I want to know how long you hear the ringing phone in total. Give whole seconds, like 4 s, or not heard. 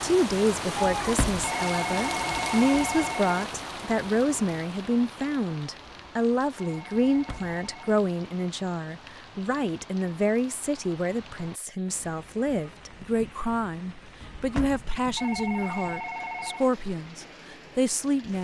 5 s.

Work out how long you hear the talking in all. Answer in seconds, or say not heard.
18 s.